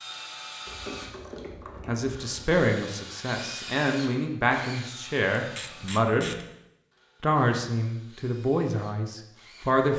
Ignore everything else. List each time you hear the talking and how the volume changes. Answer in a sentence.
You can hear the talking from 1.9 to 6.3 s, getting quieter then louder; and briefly from 7.2 to 9.9 s.